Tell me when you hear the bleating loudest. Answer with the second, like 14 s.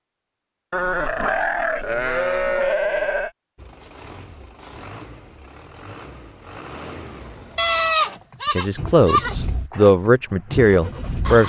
8 s.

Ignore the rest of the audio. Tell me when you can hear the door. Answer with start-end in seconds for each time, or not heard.
not heard.